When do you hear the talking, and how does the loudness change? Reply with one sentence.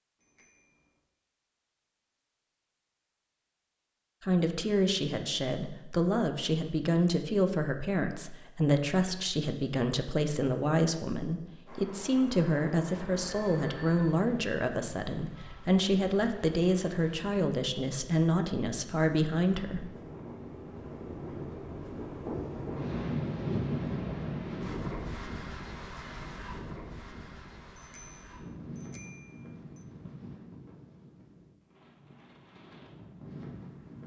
You can hear the talking from 4.2 to 19.9 s, at a steady volume.